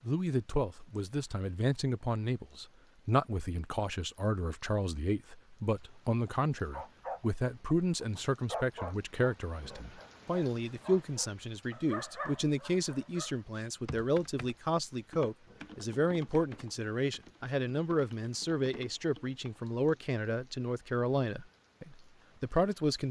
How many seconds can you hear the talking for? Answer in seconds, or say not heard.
23 s.